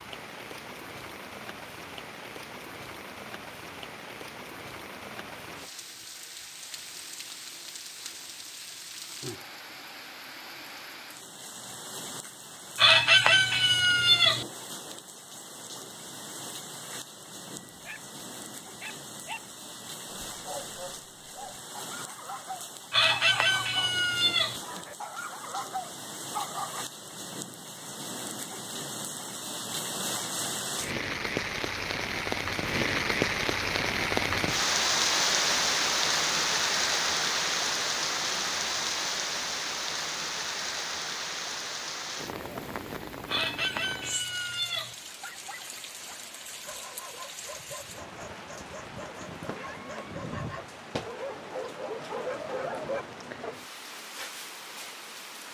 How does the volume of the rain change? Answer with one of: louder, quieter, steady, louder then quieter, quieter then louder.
louder then quieter.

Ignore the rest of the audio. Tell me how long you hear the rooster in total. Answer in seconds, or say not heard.
5 s.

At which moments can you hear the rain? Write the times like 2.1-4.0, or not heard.
0.0-55.4.